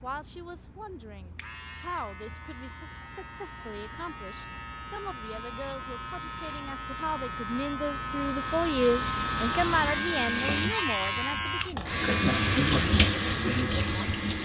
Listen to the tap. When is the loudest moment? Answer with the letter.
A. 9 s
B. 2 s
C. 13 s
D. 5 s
C.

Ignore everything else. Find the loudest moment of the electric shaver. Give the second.
11 s.